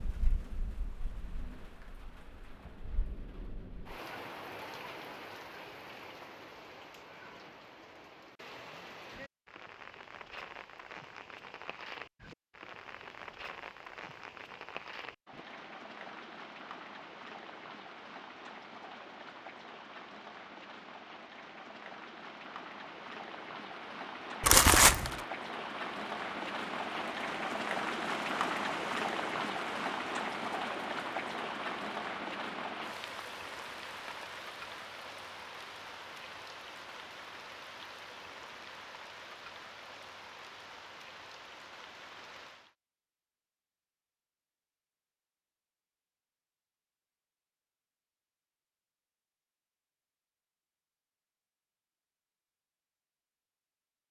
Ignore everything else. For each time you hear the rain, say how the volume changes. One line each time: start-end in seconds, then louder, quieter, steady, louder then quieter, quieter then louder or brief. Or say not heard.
0.0-42.8 louder then quieter.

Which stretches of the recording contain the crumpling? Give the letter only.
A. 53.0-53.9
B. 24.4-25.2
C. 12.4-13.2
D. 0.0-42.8
B.